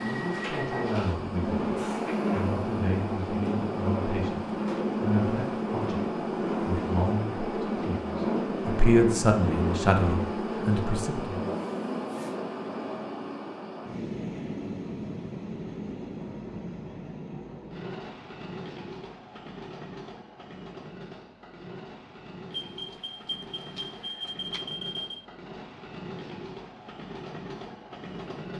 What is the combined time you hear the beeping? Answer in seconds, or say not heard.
3 s.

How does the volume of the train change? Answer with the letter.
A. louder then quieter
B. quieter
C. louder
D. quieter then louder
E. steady
B.